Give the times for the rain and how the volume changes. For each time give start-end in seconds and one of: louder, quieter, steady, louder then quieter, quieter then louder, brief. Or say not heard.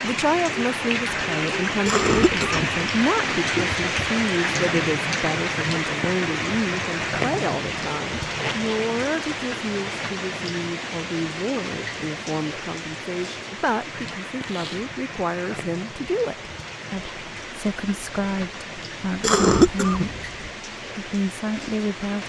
0.0-22.2 quieter.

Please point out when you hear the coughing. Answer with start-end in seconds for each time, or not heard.
1.9-2.6, 19.2-20.4.